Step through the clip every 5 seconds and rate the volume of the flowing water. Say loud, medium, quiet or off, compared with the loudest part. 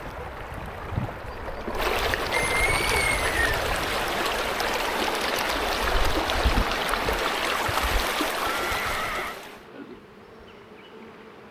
loud, loud, off.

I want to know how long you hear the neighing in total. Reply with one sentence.
The neighing can be heard for 2 seconds in total.